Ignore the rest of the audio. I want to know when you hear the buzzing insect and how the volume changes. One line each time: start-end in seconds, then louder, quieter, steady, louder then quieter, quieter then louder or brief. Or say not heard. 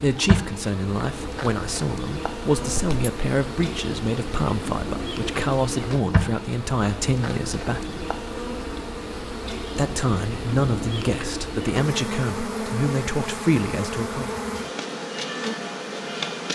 0.0-16.5 steady.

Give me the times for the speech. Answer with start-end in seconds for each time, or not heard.
0.0-8.1, 9.7-14.3.